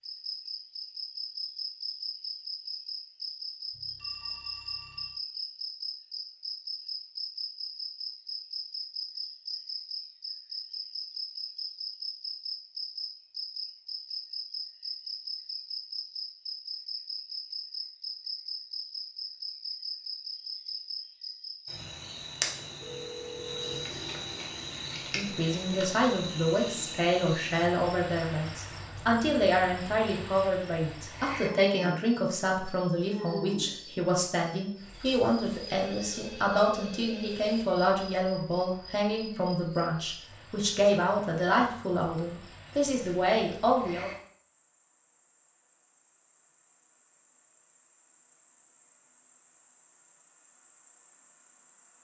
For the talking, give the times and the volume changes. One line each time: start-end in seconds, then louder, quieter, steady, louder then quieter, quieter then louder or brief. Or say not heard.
25.1-44.1 steady.